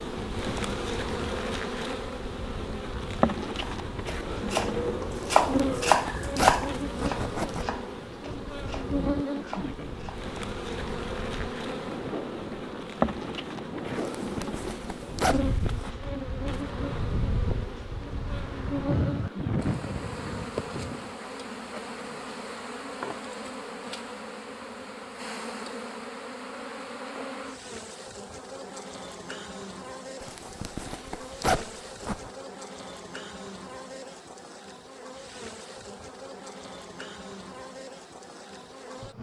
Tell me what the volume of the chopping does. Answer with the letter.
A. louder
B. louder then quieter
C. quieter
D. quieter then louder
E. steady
B.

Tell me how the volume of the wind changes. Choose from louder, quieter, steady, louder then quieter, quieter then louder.
louder.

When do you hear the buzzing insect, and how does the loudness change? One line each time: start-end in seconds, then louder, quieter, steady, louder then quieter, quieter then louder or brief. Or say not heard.
0.0-39.1 quieter.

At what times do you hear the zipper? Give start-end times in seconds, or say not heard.
5.2-7.7, 13.9-15.9, 30.2-32.3.